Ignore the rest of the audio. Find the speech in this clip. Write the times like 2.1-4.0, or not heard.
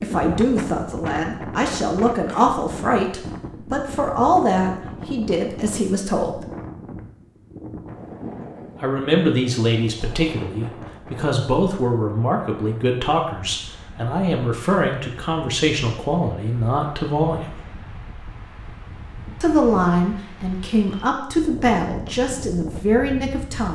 0.0-6.4, 8.8-17.6, 19.4-23.6.